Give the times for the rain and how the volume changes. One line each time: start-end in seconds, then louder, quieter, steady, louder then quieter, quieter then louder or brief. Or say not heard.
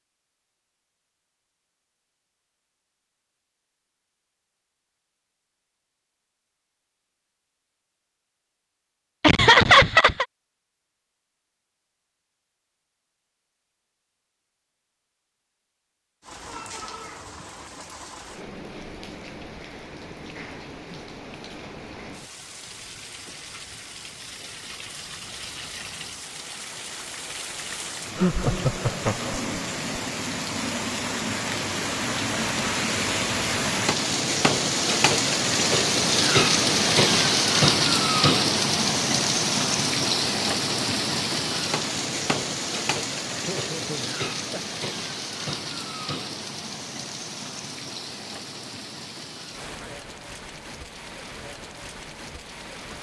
16.2-52.9 louder then quieter.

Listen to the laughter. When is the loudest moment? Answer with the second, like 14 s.
10 s.